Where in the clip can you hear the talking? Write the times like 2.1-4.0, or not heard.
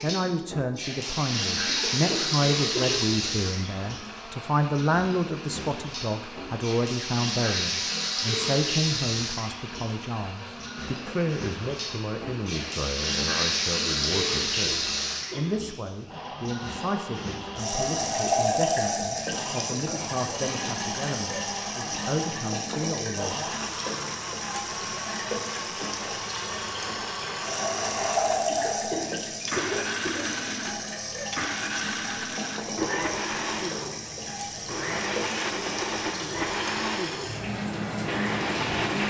0.0-23.4.